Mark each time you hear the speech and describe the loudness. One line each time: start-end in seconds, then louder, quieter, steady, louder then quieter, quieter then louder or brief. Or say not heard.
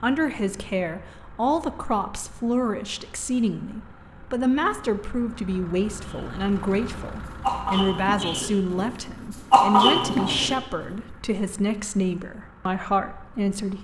0.0-13.7 steady.